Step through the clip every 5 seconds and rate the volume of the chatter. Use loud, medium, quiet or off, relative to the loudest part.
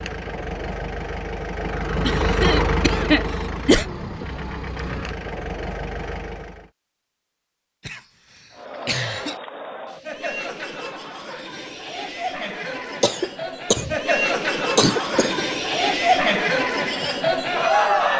off, quiet, medium, loud.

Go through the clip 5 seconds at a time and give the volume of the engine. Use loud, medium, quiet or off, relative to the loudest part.
loud, medium, off, off.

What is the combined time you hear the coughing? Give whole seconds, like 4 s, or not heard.
5 s.